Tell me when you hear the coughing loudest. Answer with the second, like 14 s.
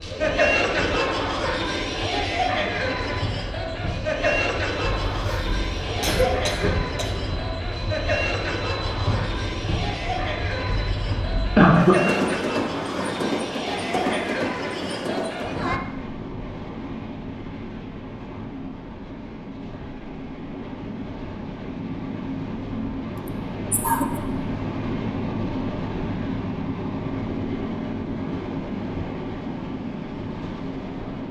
12 s.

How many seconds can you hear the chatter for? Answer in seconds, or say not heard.
16 s.